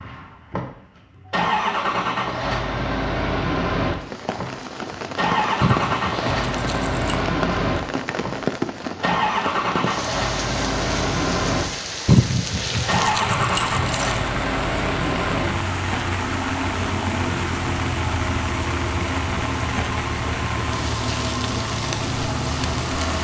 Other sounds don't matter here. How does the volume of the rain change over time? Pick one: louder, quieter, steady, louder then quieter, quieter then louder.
steady.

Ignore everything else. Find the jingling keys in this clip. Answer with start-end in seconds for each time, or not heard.
5.6-7.2, 12.1-14.3.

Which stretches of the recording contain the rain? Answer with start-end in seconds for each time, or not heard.
4.0-23.1.